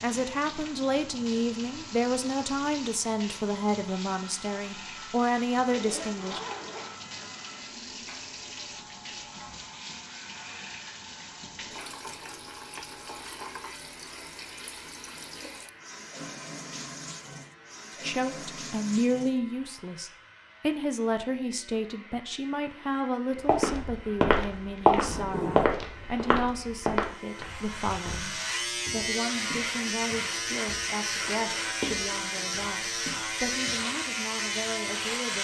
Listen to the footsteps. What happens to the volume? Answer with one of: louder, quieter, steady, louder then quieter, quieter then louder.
quieter then louder.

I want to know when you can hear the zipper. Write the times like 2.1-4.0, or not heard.
5.7-7.2, 24.9-25.8.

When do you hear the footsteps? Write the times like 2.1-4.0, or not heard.
23.4-33.9.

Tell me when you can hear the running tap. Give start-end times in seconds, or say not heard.
0.0-19.5.